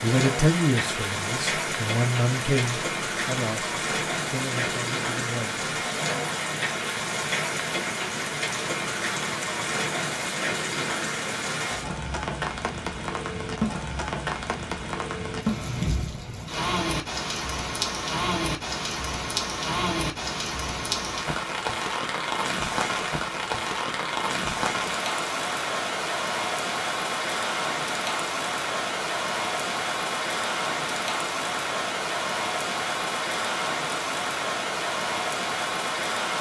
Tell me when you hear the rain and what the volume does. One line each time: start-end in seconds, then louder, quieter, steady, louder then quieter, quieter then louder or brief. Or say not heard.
0.0-36.3 steady.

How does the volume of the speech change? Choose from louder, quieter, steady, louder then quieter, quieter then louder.
quieter.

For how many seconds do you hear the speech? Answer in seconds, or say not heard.
6 s.